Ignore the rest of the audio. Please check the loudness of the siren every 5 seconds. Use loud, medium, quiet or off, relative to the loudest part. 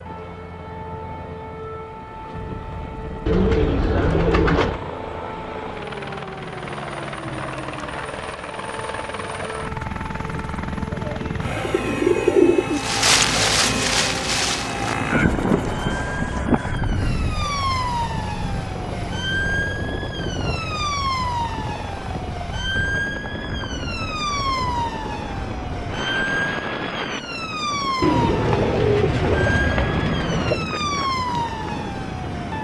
medium, medium, medium, loud, loud, loud, loud.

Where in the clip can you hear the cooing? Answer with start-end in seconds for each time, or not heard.
3.2-4.8, 10.9-12.8, 28.0-30.6.